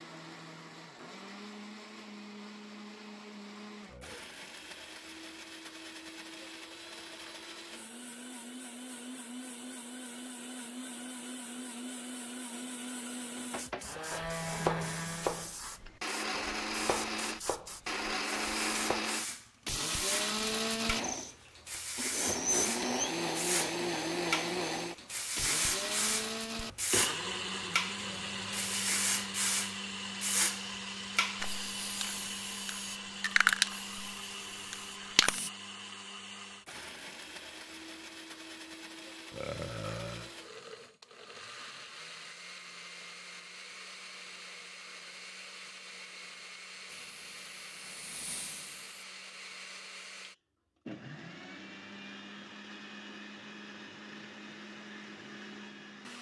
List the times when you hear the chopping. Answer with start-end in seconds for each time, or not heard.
13.3-19.1.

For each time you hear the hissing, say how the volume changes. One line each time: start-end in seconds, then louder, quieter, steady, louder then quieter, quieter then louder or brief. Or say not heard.
13.6-35.5 louder
46.9-49.0 brief.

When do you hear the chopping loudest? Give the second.
15 s.